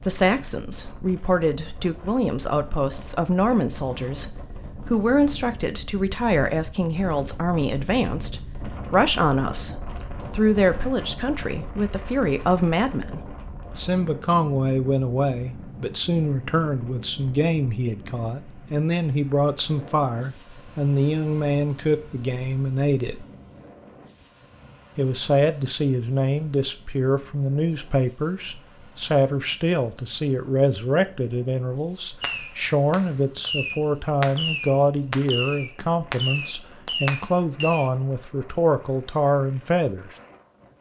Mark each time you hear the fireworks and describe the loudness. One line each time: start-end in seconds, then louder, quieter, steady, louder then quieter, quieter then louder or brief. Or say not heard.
32.2-37.9 steady.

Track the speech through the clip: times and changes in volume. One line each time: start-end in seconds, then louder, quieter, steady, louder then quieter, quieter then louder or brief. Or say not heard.
0.1-23.2 steady
24.9-40.1 steady.